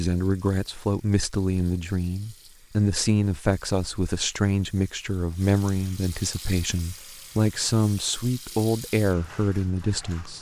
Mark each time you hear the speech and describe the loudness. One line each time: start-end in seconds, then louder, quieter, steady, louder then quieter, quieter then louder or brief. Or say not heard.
0.0-10.3 steady.